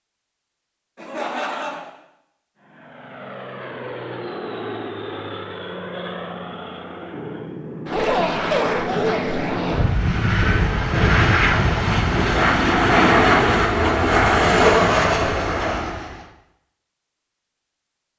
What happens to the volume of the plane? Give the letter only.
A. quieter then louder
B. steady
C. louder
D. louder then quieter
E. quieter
C.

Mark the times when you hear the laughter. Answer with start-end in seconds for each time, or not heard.
0.9-1.9, 7.9-9.4, 14.6-15.5.